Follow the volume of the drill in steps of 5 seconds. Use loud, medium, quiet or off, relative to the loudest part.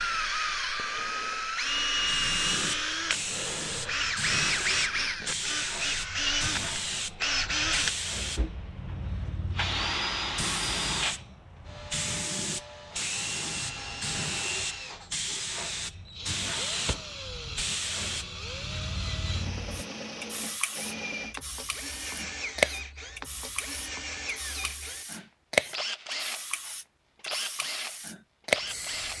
loud, loud, medium, medium, medium, medium.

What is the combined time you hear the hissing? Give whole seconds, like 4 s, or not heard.
27 s.